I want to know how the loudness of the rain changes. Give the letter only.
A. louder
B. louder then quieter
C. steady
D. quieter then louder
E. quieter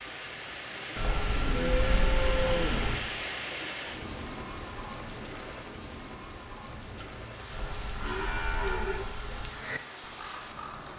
E.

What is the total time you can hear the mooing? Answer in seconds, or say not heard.
4 s.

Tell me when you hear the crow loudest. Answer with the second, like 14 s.
10 s.